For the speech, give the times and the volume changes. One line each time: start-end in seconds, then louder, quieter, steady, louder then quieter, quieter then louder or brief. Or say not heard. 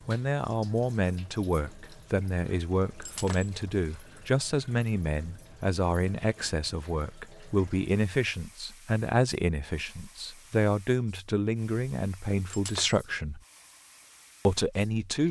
0.1-13.4 steady
14.4-15.2 brief.